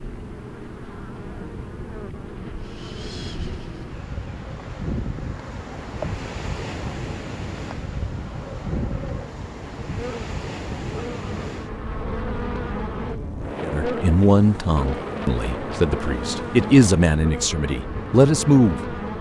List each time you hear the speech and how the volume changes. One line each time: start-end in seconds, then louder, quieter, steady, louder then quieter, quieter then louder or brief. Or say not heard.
13.6-18.9 quieter then louder.